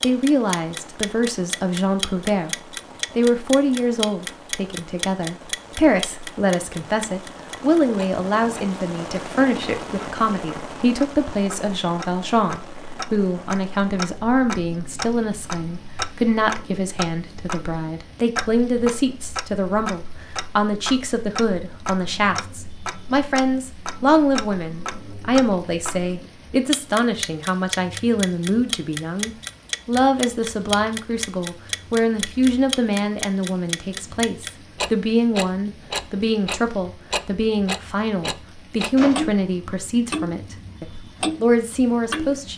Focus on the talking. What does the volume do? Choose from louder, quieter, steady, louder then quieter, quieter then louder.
steady.